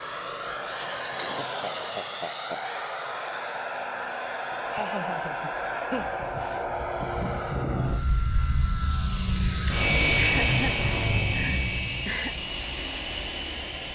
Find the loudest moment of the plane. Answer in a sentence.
The loudest moment of the plane is at 10 seconds.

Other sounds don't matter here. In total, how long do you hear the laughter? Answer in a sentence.
You can hear the laughter for 5 seconds altogether.